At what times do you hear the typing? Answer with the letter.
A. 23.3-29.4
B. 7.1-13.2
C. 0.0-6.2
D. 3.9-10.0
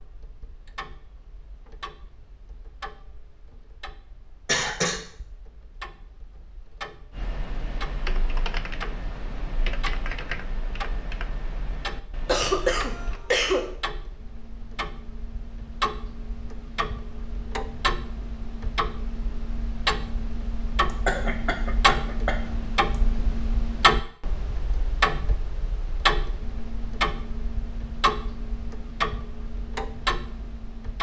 B.